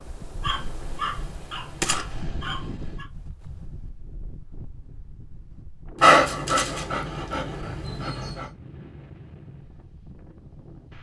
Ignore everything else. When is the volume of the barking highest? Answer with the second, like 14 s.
6 s.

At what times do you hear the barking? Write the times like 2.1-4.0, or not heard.
0.4-3.0, 6.0-8.4.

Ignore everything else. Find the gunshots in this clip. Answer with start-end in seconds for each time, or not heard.
1.8-2.5.